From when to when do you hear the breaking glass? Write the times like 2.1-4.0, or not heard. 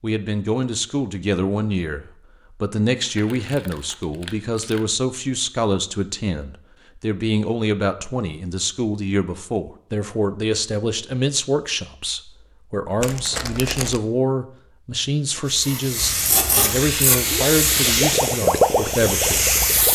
not heard.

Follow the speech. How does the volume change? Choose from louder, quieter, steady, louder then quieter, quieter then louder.
steady.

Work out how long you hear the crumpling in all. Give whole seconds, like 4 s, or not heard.
3 s.